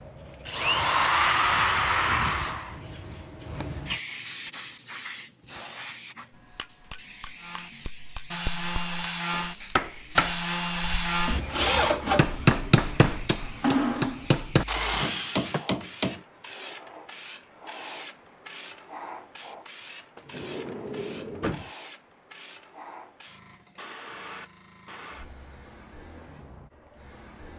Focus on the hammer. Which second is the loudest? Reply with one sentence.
The loudest moment of the hammer is at 13 seconds.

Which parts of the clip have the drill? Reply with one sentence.
The drill can be heard from 0.0 to 2.8 s and from 7.3 to 15.7 s.